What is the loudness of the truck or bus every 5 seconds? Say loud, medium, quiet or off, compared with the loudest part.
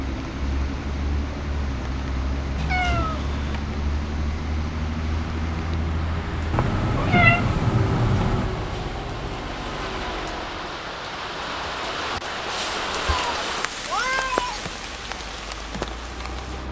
loud, loud, medium, medium.